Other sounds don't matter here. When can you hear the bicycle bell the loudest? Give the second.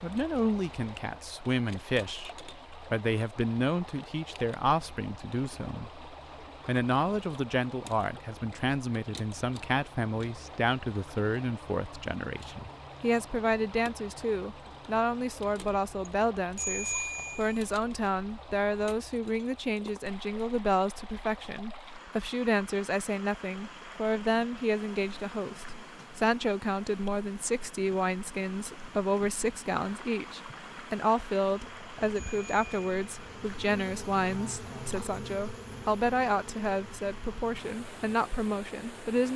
17 s.